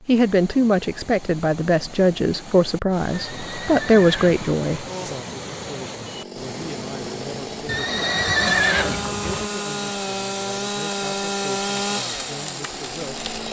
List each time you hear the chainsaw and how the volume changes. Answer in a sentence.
You can hear the chainsaw from 4.8 to 13.4 s, getting louder.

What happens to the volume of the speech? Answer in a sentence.
The loudness of the speech goes down.